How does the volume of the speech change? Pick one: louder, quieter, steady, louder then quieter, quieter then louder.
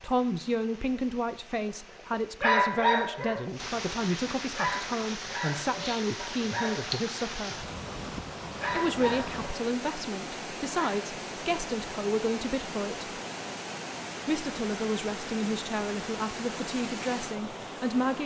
steady.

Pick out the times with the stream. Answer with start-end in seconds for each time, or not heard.
0.0-18.2.